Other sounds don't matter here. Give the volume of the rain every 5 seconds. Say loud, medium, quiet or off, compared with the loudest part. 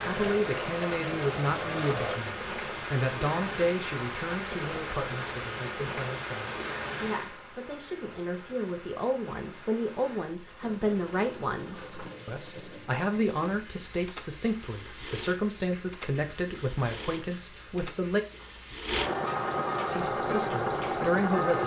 loud, loud, quiet, quiet, off.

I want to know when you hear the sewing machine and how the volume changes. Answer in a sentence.
You can hear the sewing machine briefly from 0.0 to 2.2 s; and from 10.6 to 21.6 s, getting louder.